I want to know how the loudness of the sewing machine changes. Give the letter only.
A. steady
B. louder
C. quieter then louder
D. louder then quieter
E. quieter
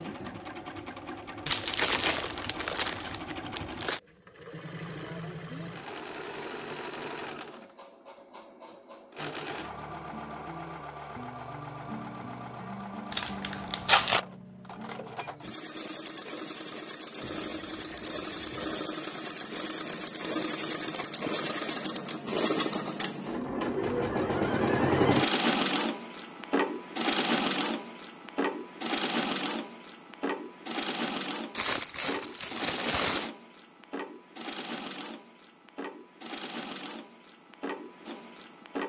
D.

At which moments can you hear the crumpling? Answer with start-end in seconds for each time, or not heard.
1.4-4.0, 13.1-14.2, 31.5-33.3.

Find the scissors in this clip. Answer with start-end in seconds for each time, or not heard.
17.2-18.8.